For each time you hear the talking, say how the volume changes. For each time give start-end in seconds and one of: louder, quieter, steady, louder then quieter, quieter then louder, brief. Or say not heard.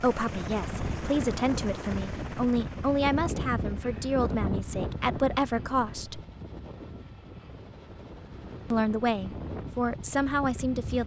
0.0-6.2 steady
8.7-11.0 brief.